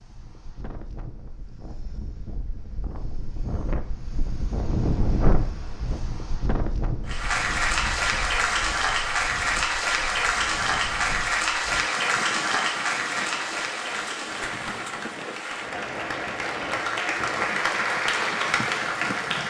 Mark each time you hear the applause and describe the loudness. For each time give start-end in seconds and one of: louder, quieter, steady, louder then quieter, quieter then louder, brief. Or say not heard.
7.0-19.4 quieter then louder.